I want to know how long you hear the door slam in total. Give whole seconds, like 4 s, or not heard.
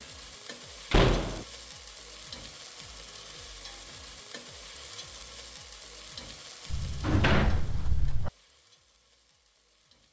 2 s.